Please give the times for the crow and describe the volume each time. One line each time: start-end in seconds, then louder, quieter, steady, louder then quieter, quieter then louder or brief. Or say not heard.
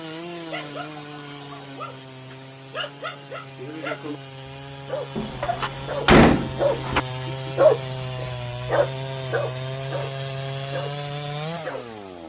not heard.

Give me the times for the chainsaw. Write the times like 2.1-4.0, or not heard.
0.0-12.2.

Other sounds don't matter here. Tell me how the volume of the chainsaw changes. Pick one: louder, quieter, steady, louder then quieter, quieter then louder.
louder.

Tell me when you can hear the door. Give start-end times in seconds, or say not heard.
5.2-7.0.